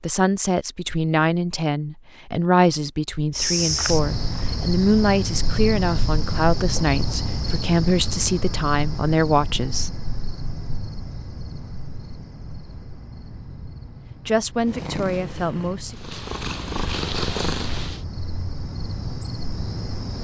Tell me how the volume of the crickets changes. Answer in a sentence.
The loudness of the crickets goes down, then up.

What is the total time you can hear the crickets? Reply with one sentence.
You can hear the crickets for 17 seconds altogether.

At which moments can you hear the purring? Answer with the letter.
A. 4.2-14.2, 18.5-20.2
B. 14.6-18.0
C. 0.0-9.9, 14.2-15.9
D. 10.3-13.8
B.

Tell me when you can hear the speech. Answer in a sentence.
You can hear the speech from 0.0 to 9.9 s and from 14.2 to 15.9 s.